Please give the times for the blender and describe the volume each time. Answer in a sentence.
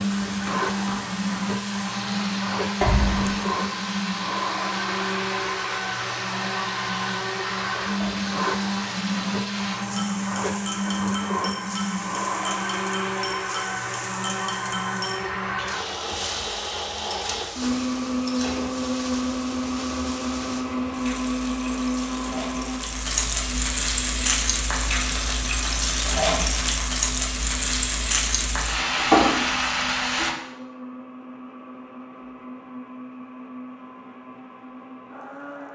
The blender can be heard from 0.0 to 35.6 s, getting quieter.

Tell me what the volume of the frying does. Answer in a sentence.
The volume of the frying goes up.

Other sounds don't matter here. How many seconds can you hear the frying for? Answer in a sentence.
The frying can be heard for 30 seconds in total.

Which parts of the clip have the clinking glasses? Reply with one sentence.
The clinking glasses can be heard from 2.8 to 3.5 s.